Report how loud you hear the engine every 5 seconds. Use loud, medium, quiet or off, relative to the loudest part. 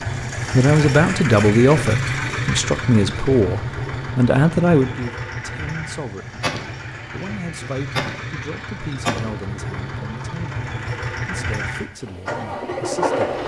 loud, medium, loud.